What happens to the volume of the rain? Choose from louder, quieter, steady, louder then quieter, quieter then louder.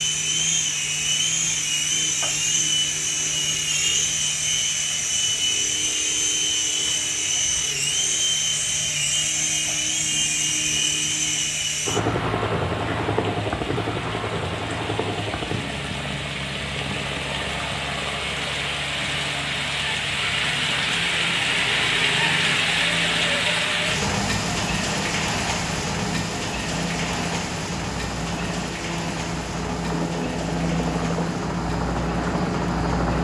louder then quieter.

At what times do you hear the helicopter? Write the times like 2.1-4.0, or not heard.
0.0-33.1.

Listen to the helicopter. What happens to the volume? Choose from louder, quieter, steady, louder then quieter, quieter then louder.
quieter then louder.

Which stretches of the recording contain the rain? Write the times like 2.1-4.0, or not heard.
0.0-33.1.